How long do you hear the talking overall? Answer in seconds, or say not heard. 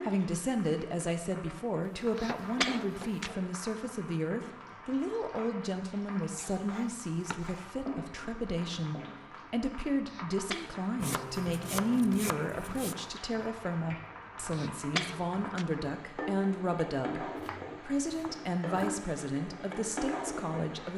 21 s.